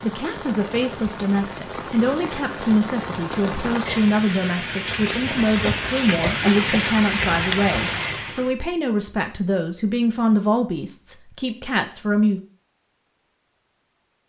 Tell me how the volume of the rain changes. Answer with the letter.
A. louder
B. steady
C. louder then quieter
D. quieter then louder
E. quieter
A.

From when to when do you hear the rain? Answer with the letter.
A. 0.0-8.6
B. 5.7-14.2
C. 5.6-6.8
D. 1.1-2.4
A.